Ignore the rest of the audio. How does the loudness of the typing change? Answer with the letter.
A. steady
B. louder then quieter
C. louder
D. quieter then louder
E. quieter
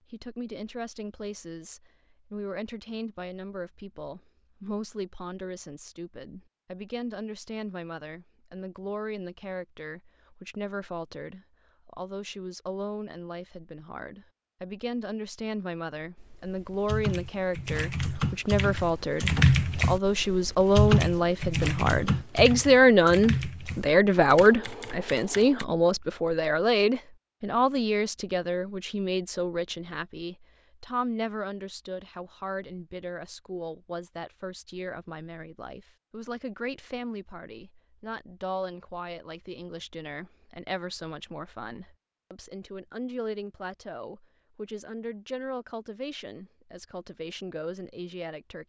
B.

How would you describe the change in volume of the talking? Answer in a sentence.
The volume of the talking goes up, then down.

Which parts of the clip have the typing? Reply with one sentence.
You can hear the typing from 16.1 to 25.6 s.